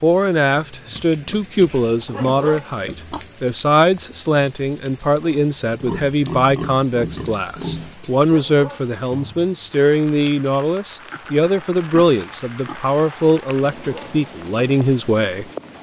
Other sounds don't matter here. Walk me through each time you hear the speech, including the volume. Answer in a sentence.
The speech can be heard from 0.0 to 15.4 s, at a steady volume.